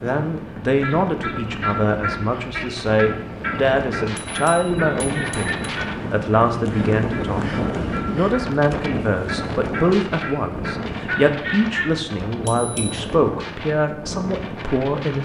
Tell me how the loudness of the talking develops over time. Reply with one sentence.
The volume of the talking stays about the same.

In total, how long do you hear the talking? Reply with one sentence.
You can hear the talking for 15 seconds altogether.